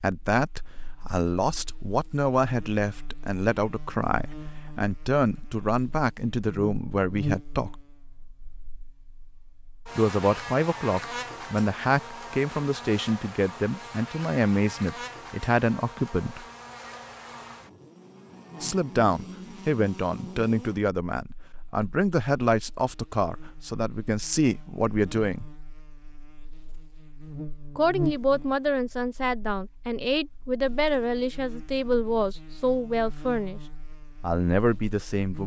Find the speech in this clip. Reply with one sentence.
You can hear the speech from 0.0 to 7.8 s, from 9.9 to 16.4 s, from 18.6 to 25.4 s, from 27.8 to 33.6 s and from 34.2 to 35.4 s.